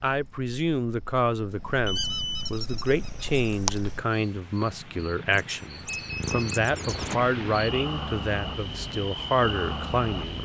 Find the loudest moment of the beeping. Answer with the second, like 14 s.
2 s.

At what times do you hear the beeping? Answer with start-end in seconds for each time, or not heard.
1.9-2.5, 5.8-6.6.